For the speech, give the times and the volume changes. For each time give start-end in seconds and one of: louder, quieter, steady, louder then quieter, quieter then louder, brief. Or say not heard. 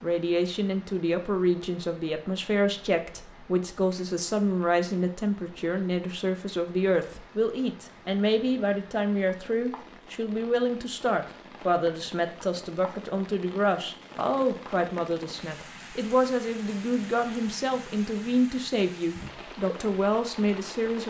0.0-21.0 steady.